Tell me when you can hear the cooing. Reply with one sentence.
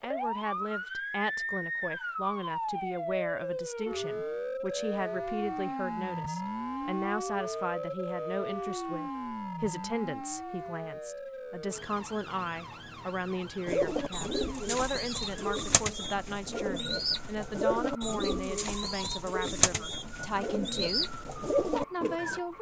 You can hear the cooing from 13.7 to 22.4 s.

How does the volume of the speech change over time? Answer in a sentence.
The loudness of the speech stays about the same.